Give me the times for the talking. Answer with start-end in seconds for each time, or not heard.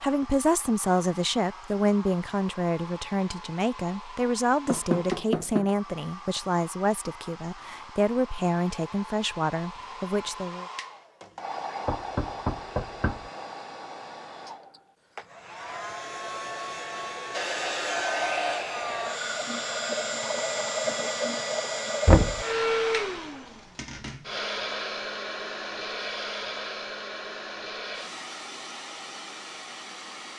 0.0-10.7.